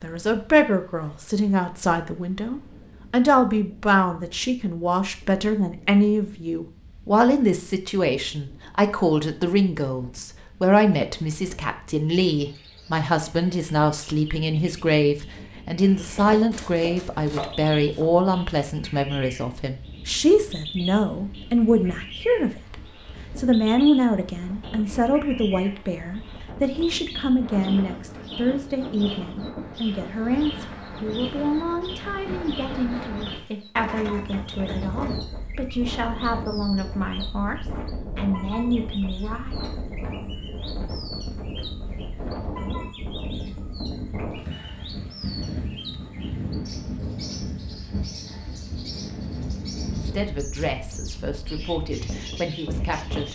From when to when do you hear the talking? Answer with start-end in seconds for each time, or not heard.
0.0-39.6, 50.0-53.2.